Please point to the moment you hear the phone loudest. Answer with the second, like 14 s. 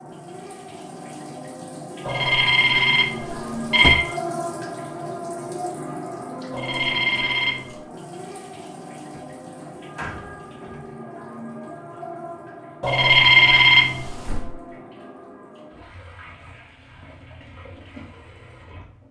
13 s.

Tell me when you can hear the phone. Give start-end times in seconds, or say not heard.
2.0-4.0, 6.5-7.8, 12.8-14.3.